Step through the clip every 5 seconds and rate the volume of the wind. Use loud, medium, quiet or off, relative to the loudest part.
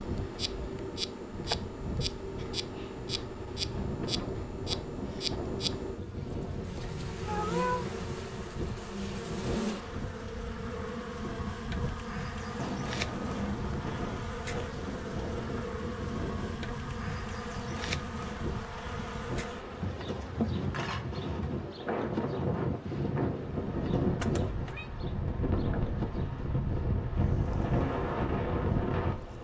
medium, medium, medium, medium, loud, loud.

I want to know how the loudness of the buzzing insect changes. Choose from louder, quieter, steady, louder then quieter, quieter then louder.
quieter.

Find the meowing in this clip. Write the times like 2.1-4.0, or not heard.
7.2-7.8, 12.6-13.7, 24.2-24.9.